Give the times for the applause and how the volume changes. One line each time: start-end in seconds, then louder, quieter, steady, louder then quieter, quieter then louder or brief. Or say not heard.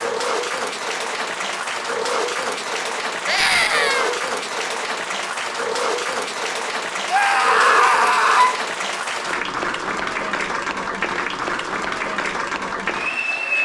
0.0-13.6 steady.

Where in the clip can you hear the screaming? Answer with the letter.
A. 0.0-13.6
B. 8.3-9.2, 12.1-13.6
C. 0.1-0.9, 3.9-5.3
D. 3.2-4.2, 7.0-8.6
D.